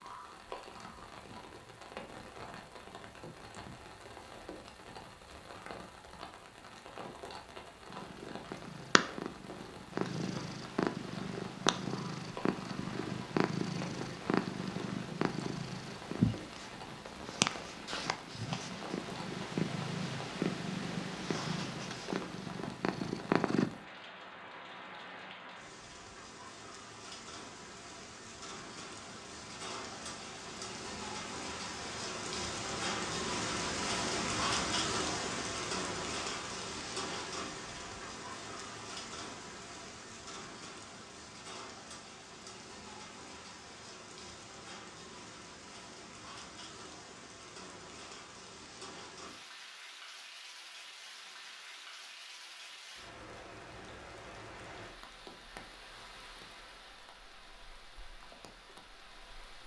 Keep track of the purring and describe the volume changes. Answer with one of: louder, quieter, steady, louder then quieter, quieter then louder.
steady.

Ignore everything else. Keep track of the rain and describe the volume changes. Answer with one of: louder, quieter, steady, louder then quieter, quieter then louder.
louder then quieter.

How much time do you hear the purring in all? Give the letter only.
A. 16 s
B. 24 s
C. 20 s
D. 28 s
A.